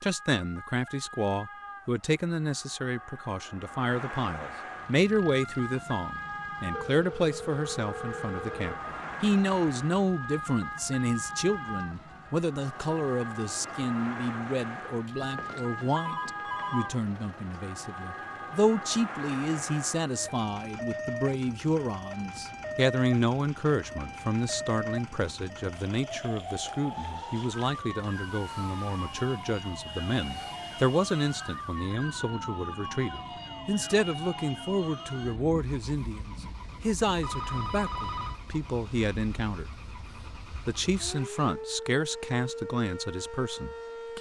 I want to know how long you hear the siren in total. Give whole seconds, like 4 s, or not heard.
44 s.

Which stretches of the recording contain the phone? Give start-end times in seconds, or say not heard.
6.7-8.8, 15.2-17.0, 37.2-38.4.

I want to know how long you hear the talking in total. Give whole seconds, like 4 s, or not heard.
43 s.